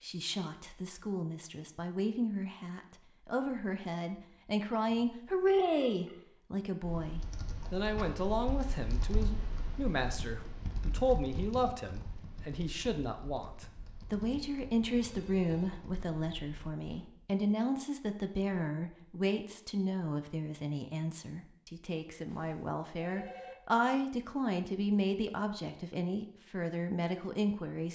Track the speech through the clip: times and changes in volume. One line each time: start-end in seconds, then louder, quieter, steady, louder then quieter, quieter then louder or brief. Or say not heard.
0.0-27.9 steady.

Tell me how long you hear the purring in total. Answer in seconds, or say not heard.
not heard.